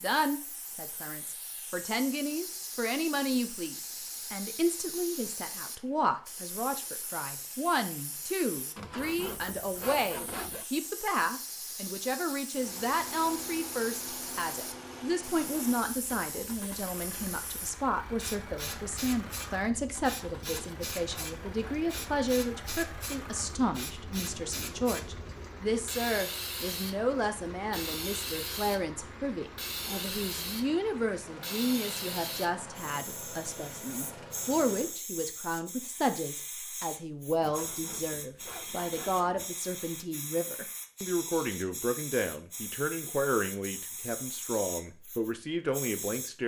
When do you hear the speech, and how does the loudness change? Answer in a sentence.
You can hear the speech from 0.0 to 46.4 s, at a steady volume.